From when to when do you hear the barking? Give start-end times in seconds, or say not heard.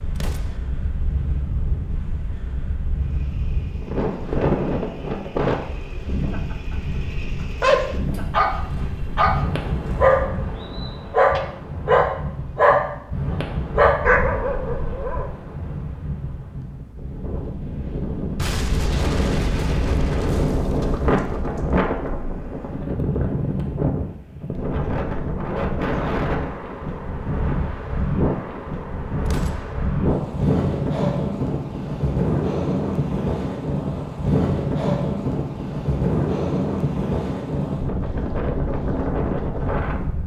7.6-15.3.